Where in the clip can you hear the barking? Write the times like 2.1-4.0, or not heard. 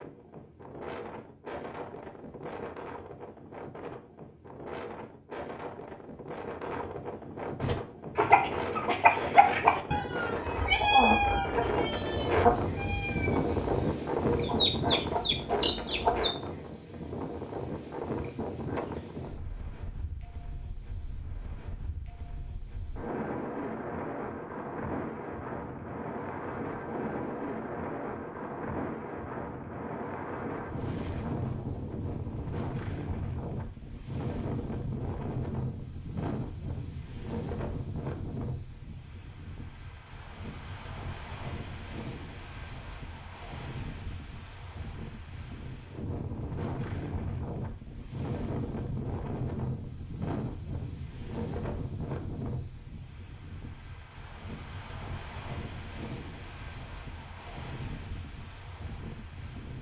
not heard.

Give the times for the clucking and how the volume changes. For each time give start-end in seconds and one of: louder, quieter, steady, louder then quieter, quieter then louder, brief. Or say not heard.
7.6-16.3 quieter then louder.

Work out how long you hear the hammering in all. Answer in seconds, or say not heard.
not heard.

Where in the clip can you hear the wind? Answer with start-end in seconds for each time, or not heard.
0.0-59.7.